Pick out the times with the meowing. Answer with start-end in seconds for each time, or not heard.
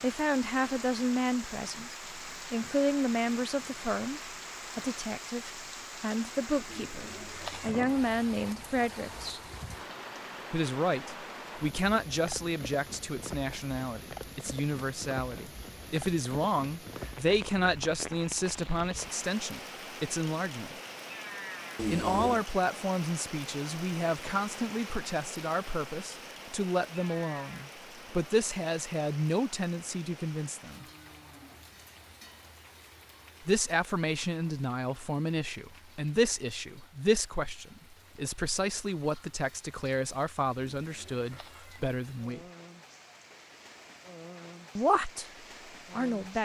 6.7-7.8, 21.8-22.4, 40.8-41.9.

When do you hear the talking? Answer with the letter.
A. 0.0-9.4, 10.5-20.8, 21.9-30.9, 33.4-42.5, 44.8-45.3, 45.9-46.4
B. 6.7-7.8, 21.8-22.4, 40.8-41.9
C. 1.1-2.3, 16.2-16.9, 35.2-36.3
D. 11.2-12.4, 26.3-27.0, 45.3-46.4
A.